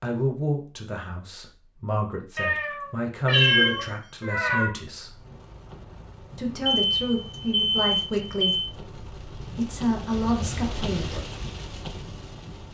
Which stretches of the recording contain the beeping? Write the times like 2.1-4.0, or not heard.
3.3-4.0, 6.7-8.8.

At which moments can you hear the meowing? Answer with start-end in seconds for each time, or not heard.
2.4-4.7, 10.1-11.2.